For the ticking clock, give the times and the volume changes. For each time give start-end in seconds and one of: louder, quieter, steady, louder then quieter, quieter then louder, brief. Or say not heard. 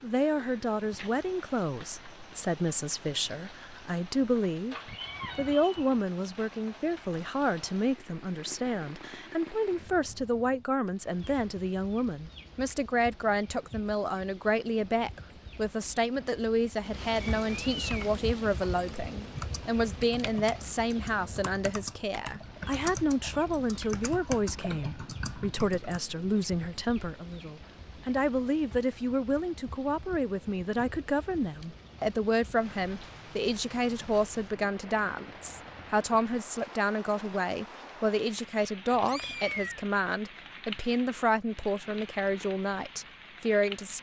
not heard.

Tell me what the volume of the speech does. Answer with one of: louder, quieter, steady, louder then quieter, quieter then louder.
steady.